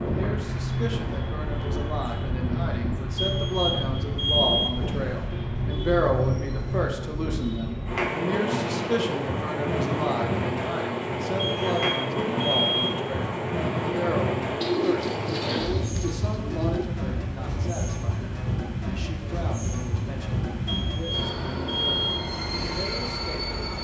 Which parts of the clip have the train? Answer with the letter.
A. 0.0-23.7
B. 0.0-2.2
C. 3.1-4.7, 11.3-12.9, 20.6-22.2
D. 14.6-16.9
A.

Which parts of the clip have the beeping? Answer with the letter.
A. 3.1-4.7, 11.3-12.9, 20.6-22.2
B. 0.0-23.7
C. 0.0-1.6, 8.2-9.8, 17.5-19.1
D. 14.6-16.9
A.